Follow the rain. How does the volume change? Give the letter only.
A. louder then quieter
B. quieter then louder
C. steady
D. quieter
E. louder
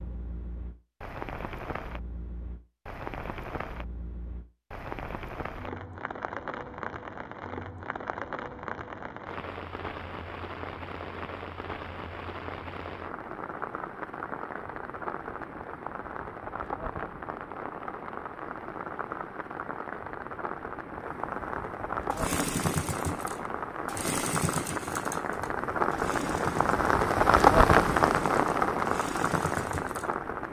E.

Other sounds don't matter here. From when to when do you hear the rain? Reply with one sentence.
The rain can be heard from 0.0 to 30.4 s.